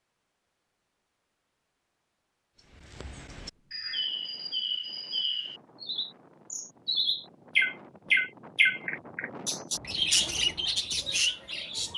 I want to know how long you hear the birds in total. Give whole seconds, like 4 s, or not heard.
9 s.